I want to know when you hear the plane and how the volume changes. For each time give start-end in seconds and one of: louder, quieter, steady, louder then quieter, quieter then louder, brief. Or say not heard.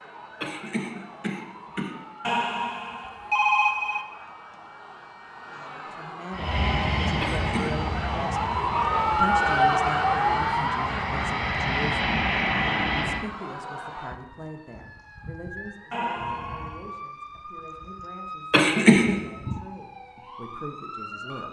6.3-13.3 quieter then louder.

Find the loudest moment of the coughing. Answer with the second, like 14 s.
19 s.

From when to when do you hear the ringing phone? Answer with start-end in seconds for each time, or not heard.
2.2-4.0, 15.9-16.9.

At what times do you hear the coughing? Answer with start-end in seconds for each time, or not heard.
0.4-1.9, 7.2-7.8, 18.5-19.1.